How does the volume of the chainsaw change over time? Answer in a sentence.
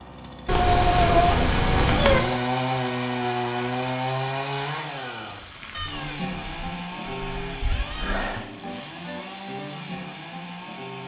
The volume of the chainsaw goes down.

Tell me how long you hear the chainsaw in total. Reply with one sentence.
You can hear the chainsaw for 11 seconds altogether.